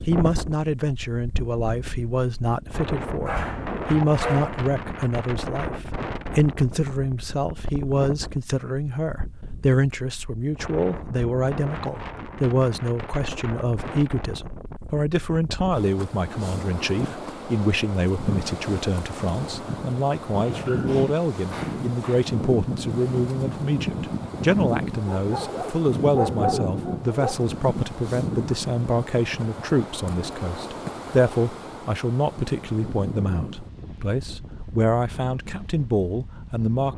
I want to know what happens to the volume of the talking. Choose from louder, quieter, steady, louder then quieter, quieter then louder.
steady.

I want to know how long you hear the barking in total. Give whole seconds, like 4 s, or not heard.
6 s.